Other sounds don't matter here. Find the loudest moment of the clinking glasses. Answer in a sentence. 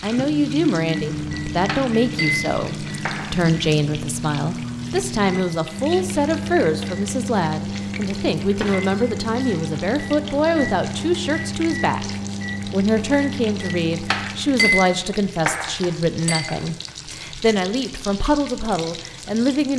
The volume of the clinking glasses peaks at 15 seconds.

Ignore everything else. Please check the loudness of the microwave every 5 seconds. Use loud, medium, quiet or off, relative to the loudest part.
loud, loud, loud, off.